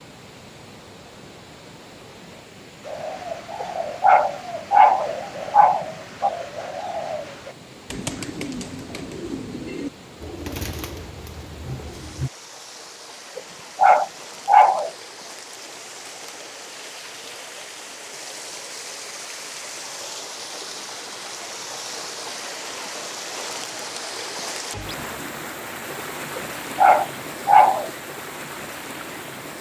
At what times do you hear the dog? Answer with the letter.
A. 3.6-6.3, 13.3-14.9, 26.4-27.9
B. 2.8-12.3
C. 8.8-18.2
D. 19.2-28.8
A.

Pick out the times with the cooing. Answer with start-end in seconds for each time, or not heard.
2.8-12.3.